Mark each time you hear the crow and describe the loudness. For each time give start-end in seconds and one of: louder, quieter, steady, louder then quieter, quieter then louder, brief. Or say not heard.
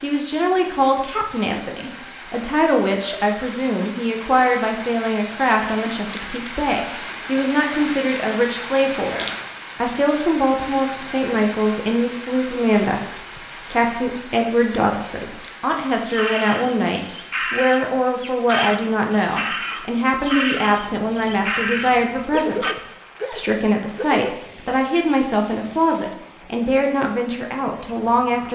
16.0-22.8 steady.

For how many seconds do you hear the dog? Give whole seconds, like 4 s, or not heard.
2 s.